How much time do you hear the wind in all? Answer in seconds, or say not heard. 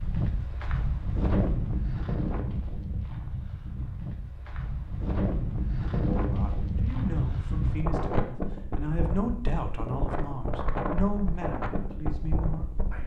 13 s.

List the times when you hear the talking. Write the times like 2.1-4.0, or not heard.
6.2-13.0.